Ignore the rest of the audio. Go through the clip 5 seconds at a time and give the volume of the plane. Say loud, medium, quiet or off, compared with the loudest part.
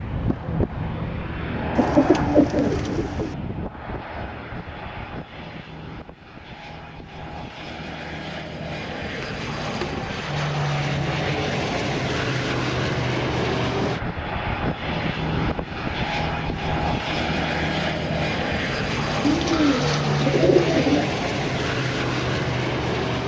medium, medium, loud, loud, loud.